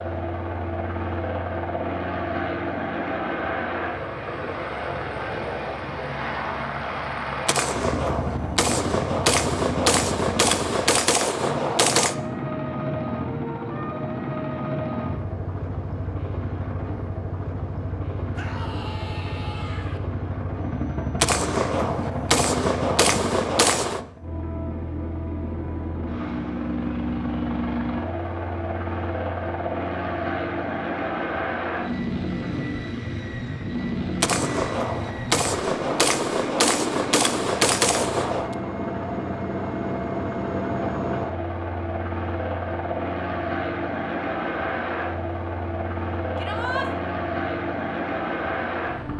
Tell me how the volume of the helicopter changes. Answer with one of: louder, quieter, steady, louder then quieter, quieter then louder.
steady.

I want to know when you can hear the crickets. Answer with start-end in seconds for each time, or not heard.
not heard.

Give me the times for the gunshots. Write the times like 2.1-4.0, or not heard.
7.5-12.2, 21.2-24.0, 34.2-38.5.